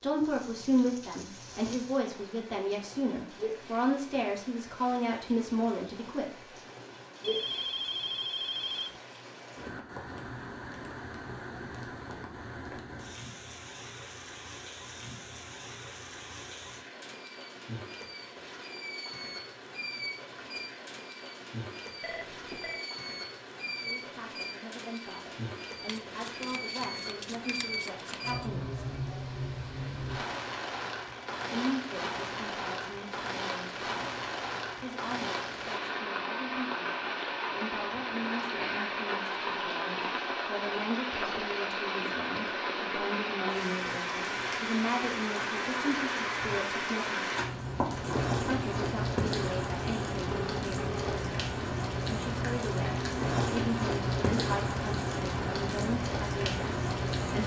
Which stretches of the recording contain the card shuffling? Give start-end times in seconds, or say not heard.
25.9-28.4.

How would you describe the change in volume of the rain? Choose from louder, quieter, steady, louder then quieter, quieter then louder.
louder.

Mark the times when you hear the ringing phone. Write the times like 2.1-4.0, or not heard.
7.2-9.0, 22.0-22.9, 50.3-51.2.